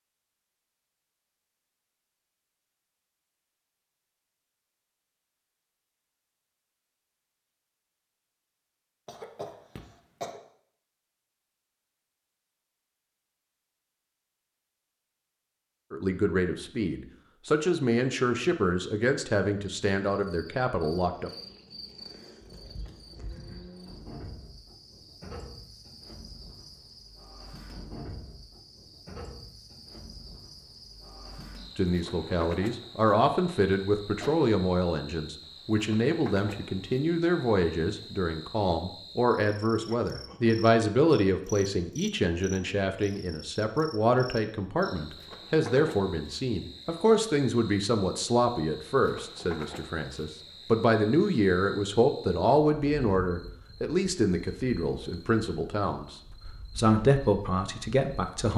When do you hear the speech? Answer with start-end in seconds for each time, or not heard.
15.9-21.3, 31.8-58.5.